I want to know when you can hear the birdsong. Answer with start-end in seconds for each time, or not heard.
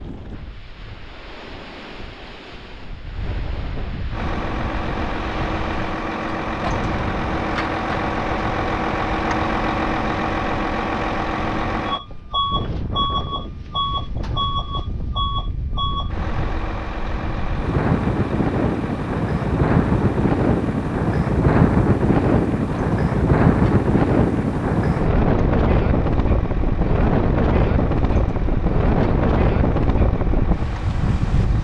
not heard.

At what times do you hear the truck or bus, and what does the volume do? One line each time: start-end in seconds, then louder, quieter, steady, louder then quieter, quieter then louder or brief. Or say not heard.
4.1-31.5 quieter.